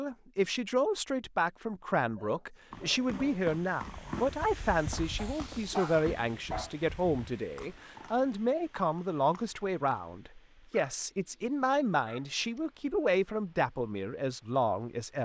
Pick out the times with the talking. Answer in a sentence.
You can hear the talking from 0.0 to 15.2 s.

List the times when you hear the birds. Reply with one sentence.
The birds can't be heard in this clip.